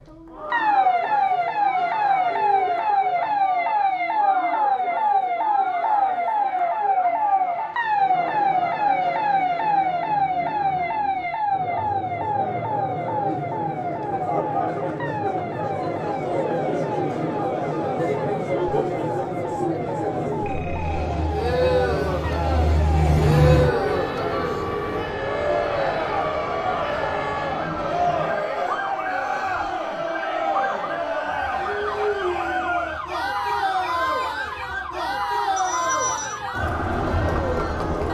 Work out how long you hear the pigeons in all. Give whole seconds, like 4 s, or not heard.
not heard.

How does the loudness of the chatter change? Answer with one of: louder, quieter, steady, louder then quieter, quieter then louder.
louder.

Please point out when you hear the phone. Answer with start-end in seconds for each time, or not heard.
2.3-2.9, 20.4-21.1, 35.5-36.4.